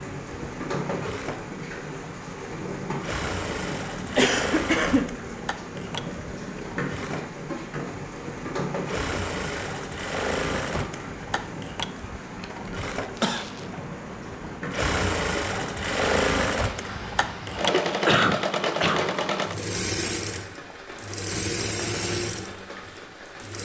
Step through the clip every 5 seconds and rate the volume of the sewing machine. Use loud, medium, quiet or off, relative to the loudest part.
medium, medium, medium, loud, medium.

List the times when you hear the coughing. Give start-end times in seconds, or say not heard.
4.2-5.2, 13.2-13.7, 18.1-19.1.